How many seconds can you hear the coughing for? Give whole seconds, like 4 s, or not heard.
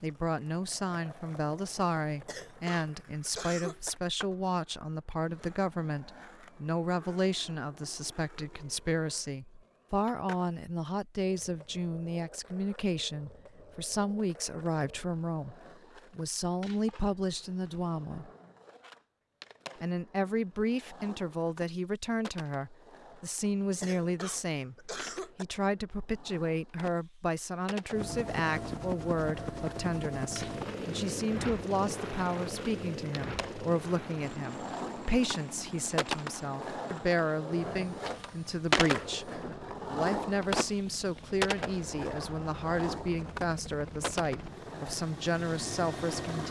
3 s.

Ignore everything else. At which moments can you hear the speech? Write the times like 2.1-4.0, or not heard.
0.0-18.3, 19.8-46.4.